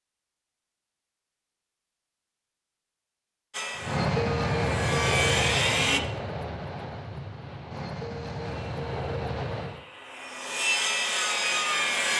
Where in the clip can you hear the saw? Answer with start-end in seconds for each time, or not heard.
3.5-6.0, 8.7-12.1.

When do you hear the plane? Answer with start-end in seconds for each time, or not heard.
3.8-9.8.